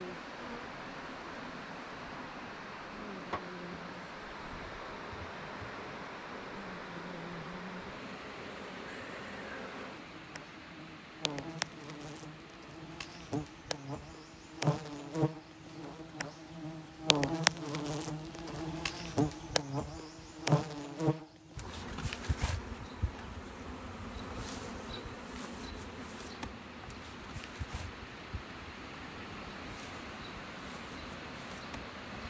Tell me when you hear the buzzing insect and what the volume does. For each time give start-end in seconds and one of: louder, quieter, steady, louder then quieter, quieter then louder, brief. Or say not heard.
0.0-32.2 louder then quieter.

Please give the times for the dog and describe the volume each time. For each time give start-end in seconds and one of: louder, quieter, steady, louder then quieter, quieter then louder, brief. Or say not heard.
not heard.